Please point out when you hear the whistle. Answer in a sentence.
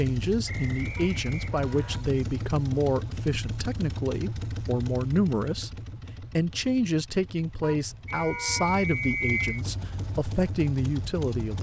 The whistle can be heard from 0.5 to 2.0 s and from 8.1 to 9.6 s.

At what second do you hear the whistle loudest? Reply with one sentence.
The volume of the whistle peaks at 9 seconds.